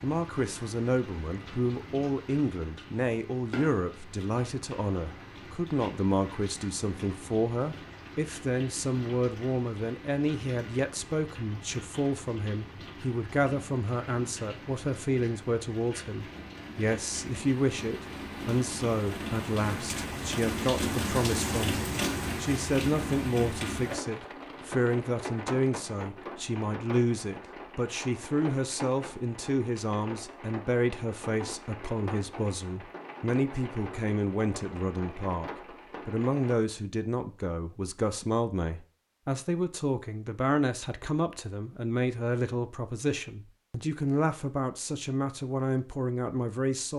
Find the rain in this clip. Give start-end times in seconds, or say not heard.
0.0-36.5.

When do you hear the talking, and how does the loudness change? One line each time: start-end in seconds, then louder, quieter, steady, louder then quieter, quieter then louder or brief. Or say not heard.
0.0-46.9 steady.